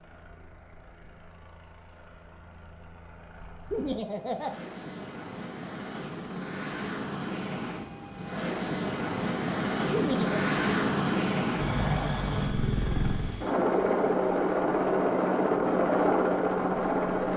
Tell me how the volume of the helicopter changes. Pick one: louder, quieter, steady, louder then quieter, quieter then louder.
louder.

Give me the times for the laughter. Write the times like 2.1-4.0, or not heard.
3.7-4.5, 9.9-10.4.